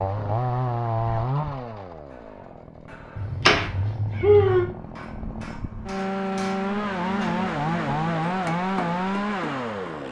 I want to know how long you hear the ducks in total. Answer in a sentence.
You can't hear the ducks here.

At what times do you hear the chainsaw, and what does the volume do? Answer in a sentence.
You can hear the chainsaw from 0.0 to 10.0 s, getting quieter then louder.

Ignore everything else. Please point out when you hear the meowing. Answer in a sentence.
The meowing can be heard from 3.1 to 4.7 s.